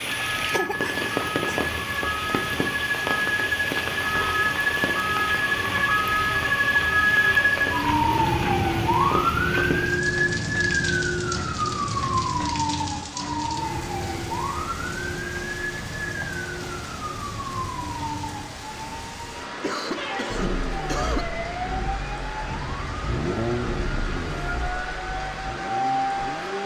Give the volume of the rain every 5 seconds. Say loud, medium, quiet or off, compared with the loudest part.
loud, loud, medium, medium, medium, medium.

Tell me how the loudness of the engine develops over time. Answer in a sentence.
The volume of the engine goes up, then down.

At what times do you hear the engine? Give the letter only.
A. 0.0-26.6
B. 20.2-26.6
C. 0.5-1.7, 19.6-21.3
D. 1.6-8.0
B.